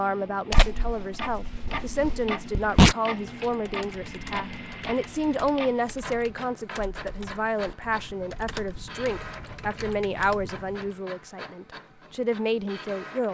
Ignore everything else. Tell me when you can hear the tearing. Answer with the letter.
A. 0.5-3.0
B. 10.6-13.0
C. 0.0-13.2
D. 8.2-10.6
A.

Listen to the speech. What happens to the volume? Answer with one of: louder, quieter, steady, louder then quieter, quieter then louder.
steady.